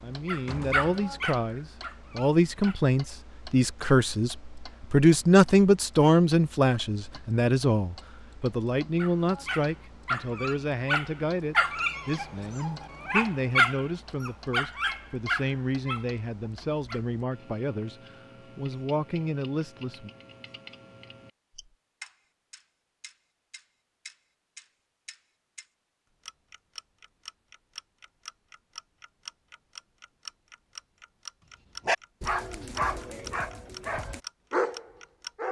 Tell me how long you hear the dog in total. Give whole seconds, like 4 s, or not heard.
14 s.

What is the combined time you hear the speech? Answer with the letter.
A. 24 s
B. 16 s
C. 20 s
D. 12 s
C.